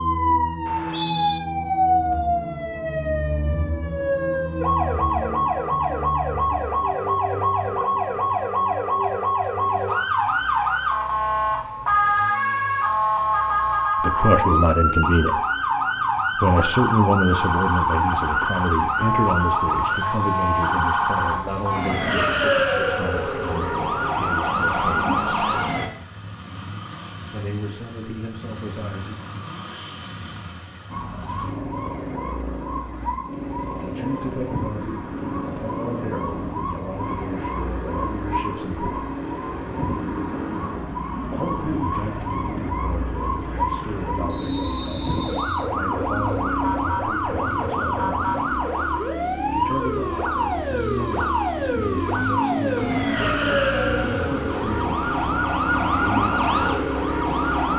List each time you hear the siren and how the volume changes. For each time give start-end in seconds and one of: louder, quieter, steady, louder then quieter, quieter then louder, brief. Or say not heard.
0.0-25.9 steady
30.9-57.7 louder.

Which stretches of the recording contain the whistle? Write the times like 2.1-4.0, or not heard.
0.7-1.4, 44.2-45.7.